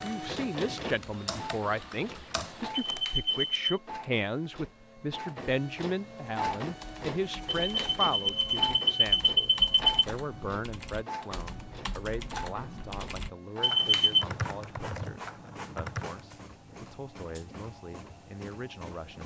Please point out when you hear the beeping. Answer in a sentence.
You can hear the beeping from 2.8 to 3.8 s, from 7.6 to 10.1 s and from 13.6 to 14.2 s.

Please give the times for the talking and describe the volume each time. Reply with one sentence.
You can hear the talking from 0.0 to 19.2 s, getting quieter.